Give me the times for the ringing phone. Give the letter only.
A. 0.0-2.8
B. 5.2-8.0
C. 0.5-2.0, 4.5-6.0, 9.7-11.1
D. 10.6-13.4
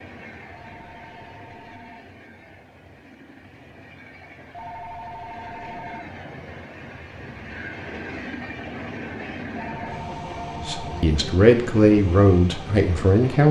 C.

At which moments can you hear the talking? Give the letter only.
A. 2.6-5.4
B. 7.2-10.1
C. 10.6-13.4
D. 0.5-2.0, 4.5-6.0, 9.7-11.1
C.